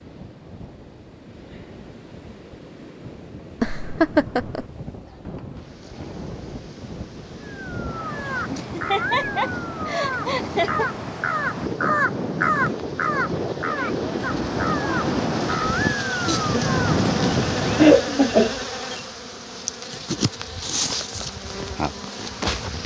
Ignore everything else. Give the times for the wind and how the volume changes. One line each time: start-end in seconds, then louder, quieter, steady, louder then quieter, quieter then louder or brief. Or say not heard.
0.0-18.0 louder.